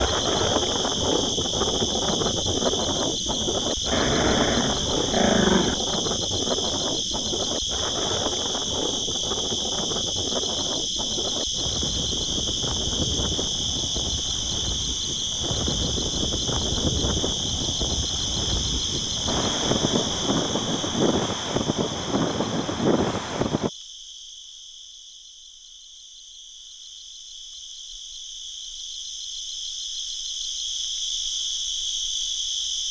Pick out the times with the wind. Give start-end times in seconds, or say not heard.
0.0-23.7.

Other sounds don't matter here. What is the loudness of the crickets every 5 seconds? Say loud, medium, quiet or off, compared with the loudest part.
loud, loud, loud, loud, medium, medium, loud.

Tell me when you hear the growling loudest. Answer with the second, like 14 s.
5 s.